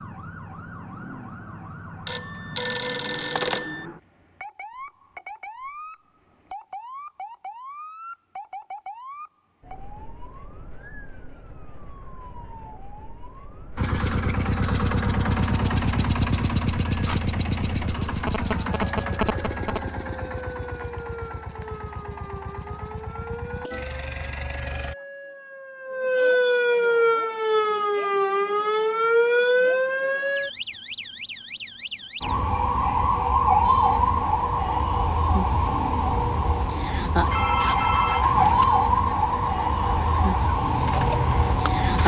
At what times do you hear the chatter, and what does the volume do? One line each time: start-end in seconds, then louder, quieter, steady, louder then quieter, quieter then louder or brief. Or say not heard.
not heard.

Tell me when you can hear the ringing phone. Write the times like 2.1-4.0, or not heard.
2.0-3.9, 18.2-19.8, 37.2-38.6.